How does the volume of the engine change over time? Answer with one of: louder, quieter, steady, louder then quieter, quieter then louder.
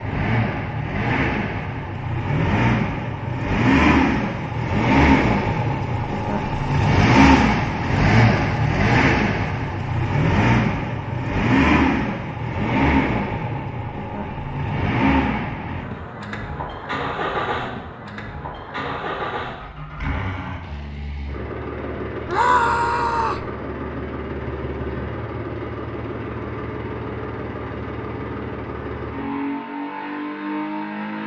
quieter.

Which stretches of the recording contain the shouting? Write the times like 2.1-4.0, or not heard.
22.2-23.4.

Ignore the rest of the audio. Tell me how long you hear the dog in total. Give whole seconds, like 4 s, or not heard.
not heard.